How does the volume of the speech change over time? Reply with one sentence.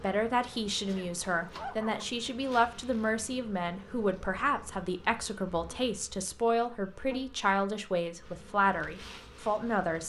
The loudness of the speech stays about the same.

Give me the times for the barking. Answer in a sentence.
You can hear the barking from 0.8 to 2.1 s.